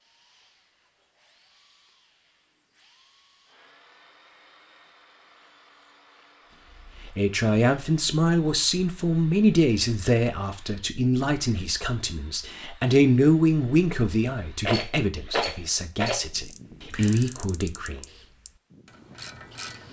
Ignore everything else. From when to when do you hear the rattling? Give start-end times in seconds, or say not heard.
14.6-16.2.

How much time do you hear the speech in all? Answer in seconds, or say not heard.
11 s.